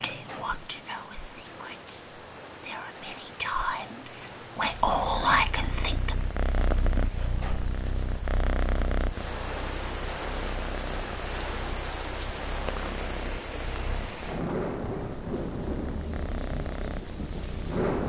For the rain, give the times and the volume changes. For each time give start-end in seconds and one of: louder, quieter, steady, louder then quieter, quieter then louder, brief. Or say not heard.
0.0-18.0 louder.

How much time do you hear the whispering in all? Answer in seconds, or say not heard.
6 s.